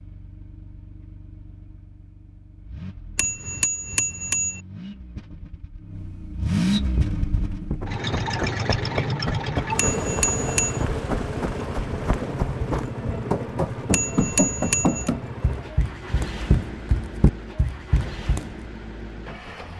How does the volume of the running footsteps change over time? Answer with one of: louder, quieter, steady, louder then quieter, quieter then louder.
louder.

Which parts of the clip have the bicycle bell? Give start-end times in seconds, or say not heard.
3.1-4.6, 9.8-10.8, 13.9-15.1.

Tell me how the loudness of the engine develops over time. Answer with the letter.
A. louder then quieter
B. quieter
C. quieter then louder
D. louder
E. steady
A.